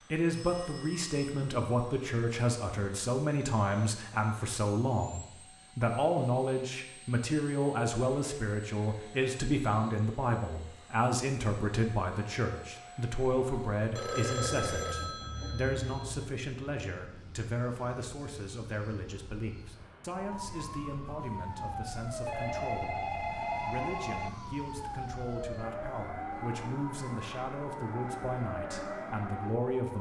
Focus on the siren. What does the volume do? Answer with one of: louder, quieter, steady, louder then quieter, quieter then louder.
steady.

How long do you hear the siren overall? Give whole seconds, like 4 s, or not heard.
10 s.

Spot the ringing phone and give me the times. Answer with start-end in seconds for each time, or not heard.
0.3-1.5, 13.9-16.3, 22.2-24.4.